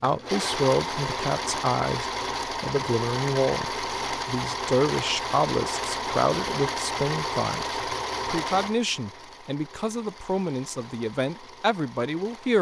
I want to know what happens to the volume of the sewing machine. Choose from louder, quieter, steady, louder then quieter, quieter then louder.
quieter.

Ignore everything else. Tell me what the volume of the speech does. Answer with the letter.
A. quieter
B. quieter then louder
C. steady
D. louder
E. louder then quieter
C.